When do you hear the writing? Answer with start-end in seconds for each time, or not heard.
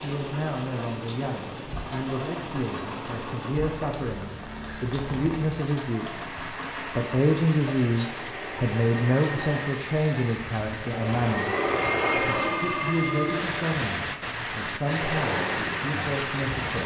not heard.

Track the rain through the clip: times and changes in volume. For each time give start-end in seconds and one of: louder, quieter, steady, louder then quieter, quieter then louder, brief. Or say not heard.
0.0-16.8 louder.